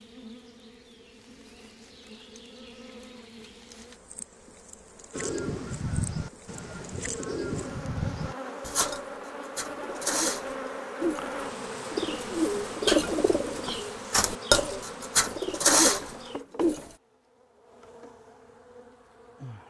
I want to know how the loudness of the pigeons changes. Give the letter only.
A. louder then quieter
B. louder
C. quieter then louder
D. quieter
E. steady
B.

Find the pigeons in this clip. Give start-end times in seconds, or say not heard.
5.1-16.9.